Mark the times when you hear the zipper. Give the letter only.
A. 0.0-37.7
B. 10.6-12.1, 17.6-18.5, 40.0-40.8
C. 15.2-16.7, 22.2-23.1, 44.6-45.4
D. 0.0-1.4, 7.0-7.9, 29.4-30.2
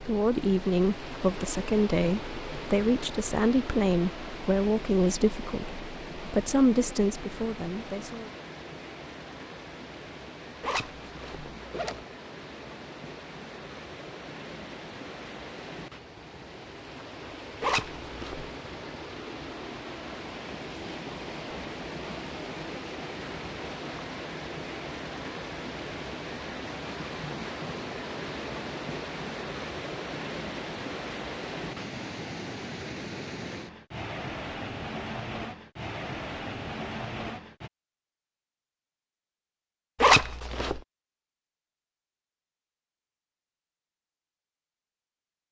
B.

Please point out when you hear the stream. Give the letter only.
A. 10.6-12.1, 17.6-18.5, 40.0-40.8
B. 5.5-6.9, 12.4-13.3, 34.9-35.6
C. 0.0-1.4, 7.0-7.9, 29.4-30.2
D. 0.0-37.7
D.